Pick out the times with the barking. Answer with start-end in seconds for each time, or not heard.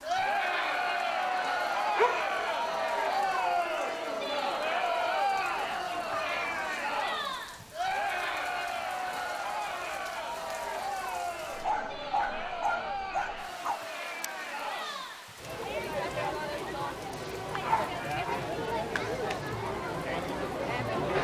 1.9-2.5, 5.3-6.6, 11.6-13.8, 17.6-19.4.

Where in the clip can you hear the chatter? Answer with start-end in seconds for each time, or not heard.
0.0-21.1.